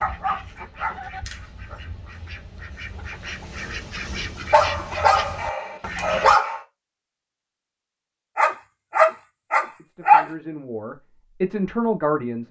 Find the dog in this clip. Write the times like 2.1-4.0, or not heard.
0.0-2.0, 4.5-6.6, 8.3-10.2.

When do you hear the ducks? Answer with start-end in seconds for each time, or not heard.
0.0-6.3.